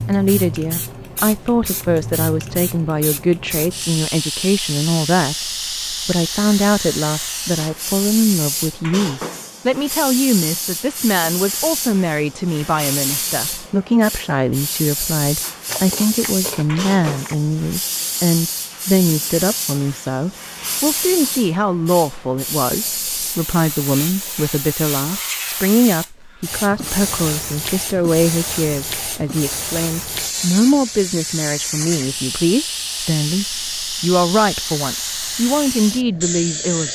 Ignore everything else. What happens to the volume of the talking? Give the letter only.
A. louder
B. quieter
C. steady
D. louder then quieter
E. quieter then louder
C.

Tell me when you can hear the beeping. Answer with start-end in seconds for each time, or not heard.
not heard.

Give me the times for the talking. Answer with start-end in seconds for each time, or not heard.
0.1-36.8.